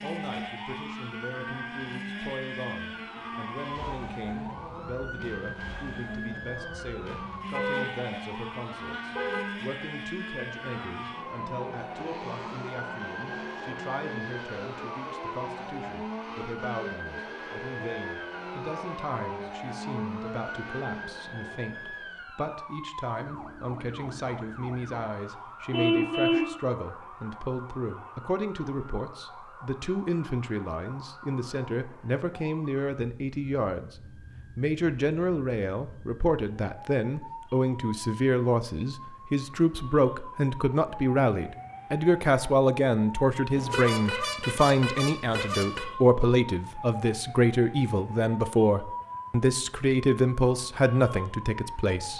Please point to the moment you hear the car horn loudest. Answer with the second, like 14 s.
26 s.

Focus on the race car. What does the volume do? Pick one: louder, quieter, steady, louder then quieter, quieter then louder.
steady.